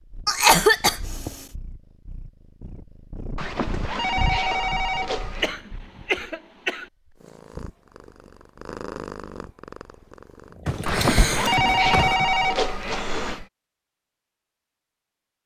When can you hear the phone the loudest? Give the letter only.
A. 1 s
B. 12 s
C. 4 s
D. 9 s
B.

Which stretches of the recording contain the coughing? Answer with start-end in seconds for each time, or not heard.
0.2-1.4, 5.4-6.8, 10.7-12.2.